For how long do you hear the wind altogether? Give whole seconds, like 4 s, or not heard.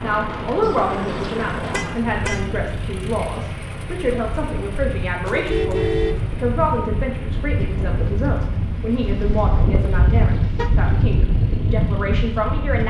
13 s.